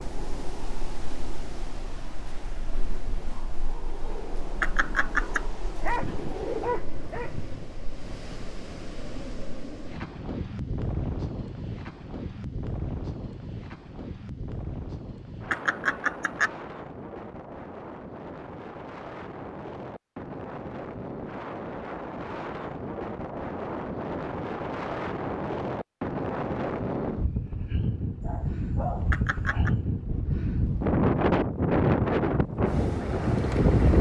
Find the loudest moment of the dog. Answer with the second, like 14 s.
6 s.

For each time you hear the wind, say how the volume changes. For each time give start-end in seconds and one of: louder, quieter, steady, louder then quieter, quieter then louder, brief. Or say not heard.
0.0-33.9 louder.